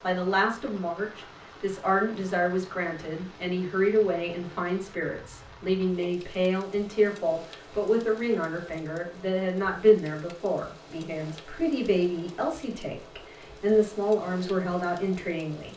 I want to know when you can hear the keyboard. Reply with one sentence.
You can't hear the keyboard here.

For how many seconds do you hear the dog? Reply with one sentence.
The dog can't be heard in this clip.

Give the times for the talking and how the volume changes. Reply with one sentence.
You can hear the talking from 0.0 to 15.7 s, at a steady volume.